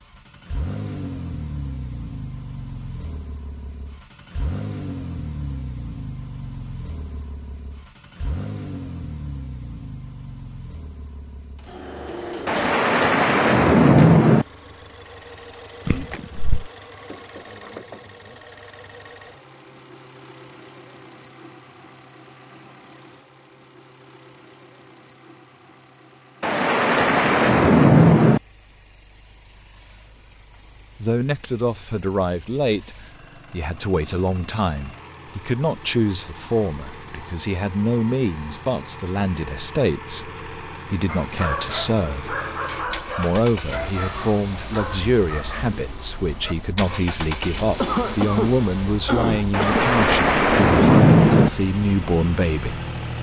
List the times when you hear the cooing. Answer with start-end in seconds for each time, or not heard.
not heard.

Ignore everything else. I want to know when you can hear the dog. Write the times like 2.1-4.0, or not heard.
41.0-46.5.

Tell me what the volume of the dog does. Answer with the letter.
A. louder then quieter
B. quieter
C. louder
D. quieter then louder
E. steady
B.